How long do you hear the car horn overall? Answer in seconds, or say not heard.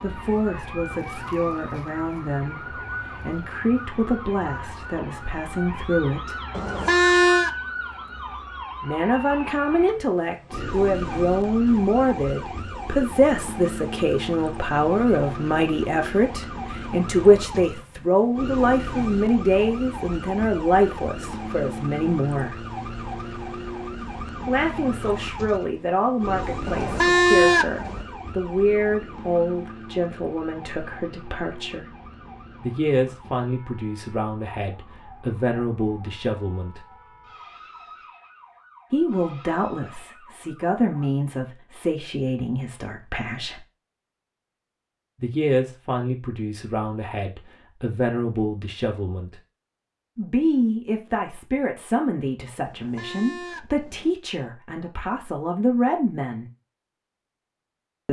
4 s.